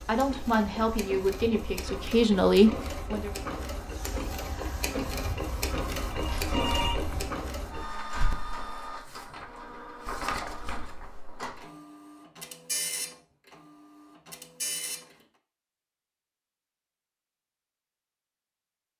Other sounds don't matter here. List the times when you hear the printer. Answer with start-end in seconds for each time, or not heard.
0.0-15.2.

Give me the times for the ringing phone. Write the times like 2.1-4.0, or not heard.
6.1-7.3.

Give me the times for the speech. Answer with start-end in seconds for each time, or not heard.
0.1-3.3.